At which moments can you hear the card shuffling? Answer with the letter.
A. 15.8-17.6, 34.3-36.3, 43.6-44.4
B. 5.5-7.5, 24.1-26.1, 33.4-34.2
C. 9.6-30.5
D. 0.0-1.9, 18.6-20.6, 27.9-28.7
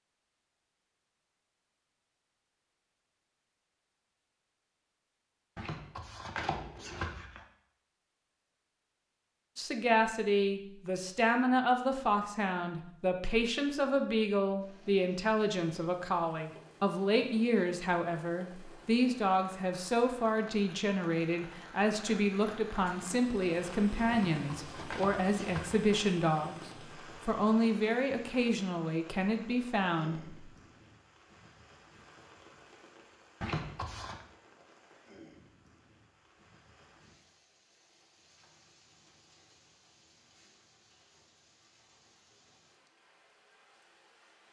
B.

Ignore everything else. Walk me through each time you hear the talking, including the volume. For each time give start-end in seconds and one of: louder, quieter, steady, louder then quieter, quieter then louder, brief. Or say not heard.
9.6-30.5 steady.